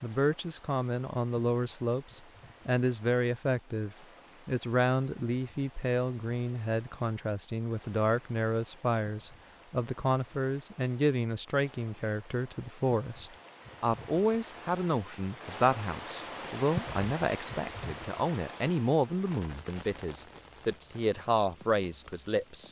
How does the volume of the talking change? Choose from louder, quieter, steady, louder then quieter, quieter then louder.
steady.